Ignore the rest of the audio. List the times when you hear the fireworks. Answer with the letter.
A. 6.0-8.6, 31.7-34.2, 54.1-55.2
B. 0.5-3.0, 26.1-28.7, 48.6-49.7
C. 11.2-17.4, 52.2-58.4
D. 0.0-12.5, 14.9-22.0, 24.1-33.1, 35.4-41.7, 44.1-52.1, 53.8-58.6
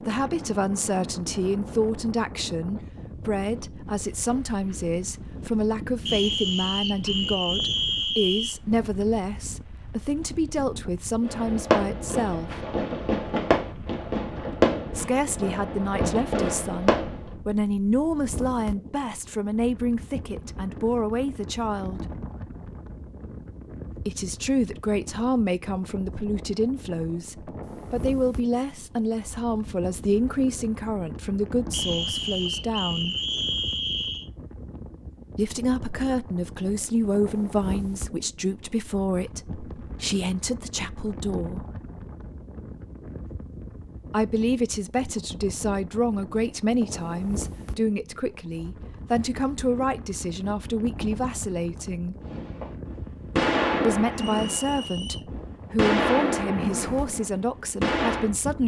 C.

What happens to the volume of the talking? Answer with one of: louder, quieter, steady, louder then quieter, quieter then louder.
steady.